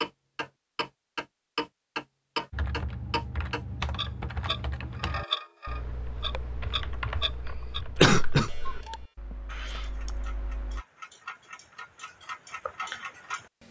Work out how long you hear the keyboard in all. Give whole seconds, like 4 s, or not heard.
8 s.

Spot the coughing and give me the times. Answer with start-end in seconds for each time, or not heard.
7.4-8.8.